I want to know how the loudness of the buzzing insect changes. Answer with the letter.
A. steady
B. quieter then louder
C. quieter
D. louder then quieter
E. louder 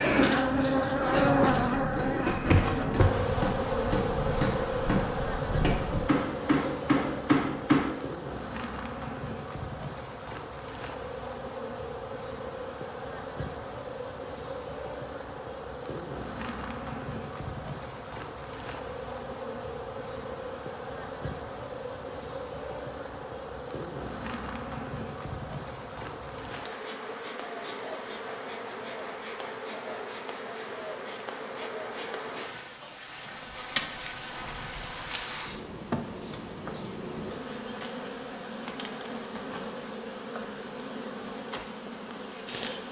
C.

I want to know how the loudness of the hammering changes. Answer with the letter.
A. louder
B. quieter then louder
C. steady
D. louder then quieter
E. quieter
A.